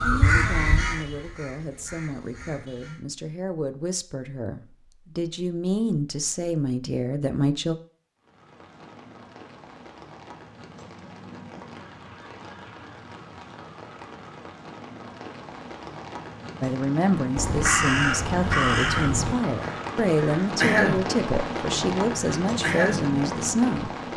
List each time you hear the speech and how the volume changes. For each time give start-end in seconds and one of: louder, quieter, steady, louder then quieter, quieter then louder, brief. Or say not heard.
0.0-7.8 louder
16.6-23.9 steady.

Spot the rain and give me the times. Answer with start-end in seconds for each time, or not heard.
8.2-24.1.